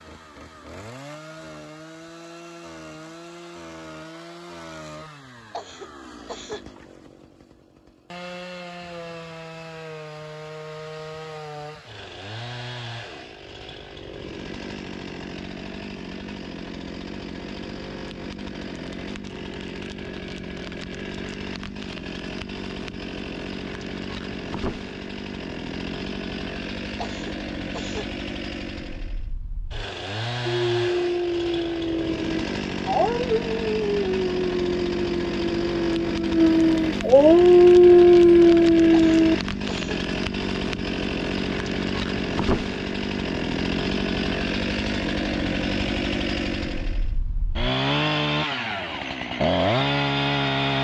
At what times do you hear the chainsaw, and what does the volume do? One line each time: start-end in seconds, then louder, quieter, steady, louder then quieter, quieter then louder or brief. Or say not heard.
0.0-50.7 louder.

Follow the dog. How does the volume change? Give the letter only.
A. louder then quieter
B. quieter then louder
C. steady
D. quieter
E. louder
E.